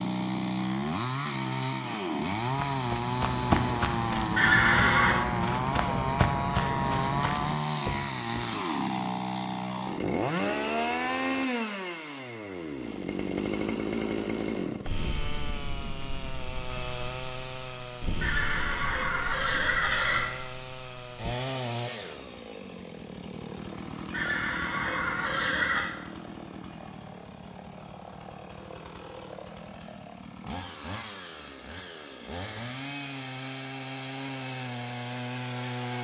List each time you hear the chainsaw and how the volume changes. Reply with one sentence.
You can hear the chainsaw from 0.0 to 35.9 s, getting quieter.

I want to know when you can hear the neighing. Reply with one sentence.
You can hear the neighing from 4.3 to 5.2 s, from 18.2 to 20.2 s and from 24.1 to 25.9 s.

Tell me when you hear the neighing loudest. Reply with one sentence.
The loudest moment of the neighing is at 5 seconds.